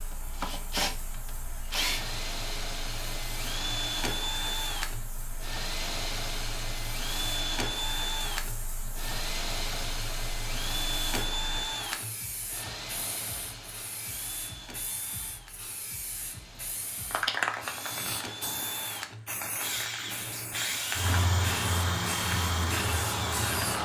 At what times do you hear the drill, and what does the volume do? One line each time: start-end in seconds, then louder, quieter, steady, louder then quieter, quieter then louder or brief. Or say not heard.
0.0-23.8 quieter then louder.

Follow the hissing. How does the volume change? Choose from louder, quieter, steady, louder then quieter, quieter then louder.
louder.